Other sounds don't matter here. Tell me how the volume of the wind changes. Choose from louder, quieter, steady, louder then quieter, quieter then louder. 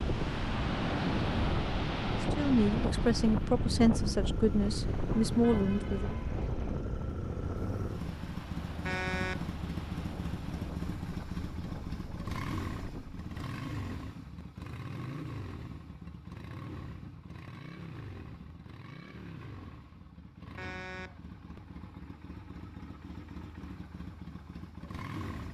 quieter.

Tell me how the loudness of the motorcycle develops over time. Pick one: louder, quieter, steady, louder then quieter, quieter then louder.
quieter.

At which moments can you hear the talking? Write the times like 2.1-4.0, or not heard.
2.2-6.2.